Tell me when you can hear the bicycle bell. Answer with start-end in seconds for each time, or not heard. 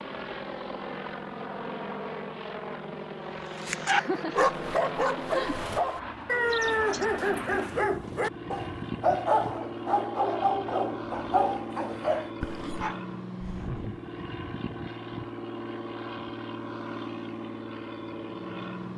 not heard.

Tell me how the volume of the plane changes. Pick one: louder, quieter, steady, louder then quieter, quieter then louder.
steady.